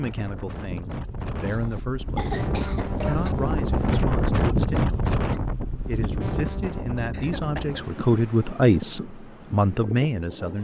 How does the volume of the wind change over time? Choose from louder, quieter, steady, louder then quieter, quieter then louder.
louder then quieter.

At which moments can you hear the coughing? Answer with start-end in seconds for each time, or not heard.
1.4-3.4, 7.1-7.8.